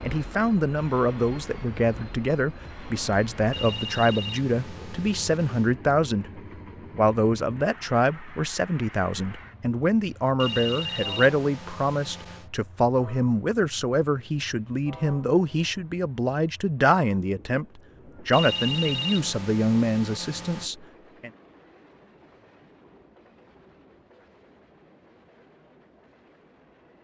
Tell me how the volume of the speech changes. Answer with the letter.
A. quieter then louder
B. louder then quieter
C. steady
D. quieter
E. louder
C.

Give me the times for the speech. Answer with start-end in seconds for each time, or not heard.
0.0-21.3.